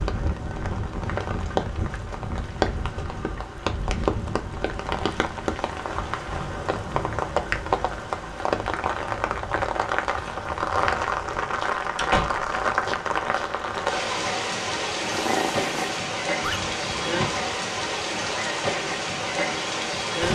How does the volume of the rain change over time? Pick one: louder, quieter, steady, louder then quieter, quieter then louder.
steady.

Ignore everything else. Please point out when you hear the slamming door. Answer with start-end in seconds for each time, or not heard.
11.9-12.5.